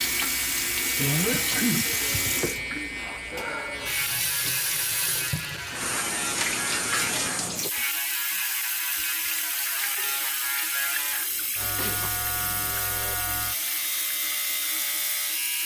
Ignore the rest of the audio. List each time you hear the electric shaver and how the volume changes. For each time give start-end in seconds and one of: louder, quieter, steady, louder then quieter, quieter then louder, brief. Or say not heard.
0.0-15.6 steady.